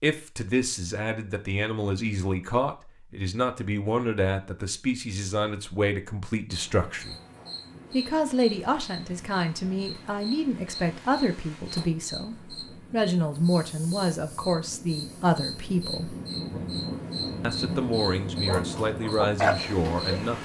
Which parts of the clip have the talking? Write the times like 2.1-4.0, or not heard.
0.0-7.2, 7.9-16.1, 17.4-20.3.